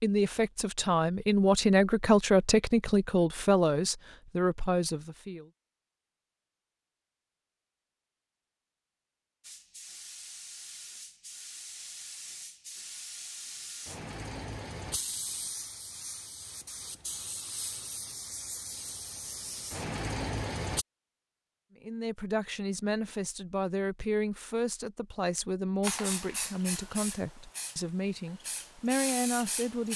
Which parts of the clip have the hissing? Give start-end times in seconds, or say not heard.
9.4-20.9, 25.8-29.9.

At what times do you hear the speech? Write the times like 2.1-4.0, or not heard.
0.0-5.5, 21.8-29.9.